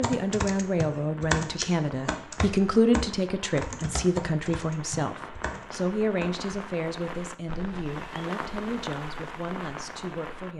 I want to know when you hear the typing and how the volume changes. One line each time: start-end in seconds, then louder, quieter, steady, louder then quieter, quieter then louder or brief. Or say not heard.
0.0-6.5 quieter.